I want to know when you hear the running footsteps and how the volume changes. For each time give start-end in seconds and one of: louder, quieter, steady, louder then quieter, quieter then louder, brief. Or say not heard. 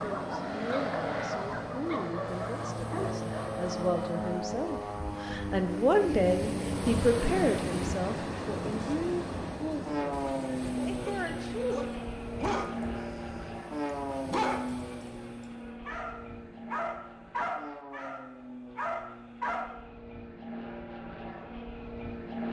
not heard.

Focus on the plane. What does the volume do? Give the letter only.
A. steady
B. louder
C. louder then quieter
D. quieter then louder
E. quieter
E.